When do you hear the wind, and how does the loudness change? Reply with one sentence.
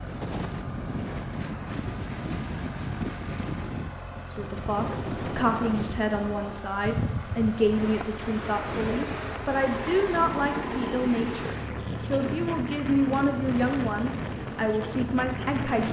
The wind can be heard from 0.0 to 15.8 s, at a steady volume.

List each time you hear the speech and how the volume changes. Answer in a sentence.
The speech can be heard from 4.3 to 15.8 s, at a steady volume.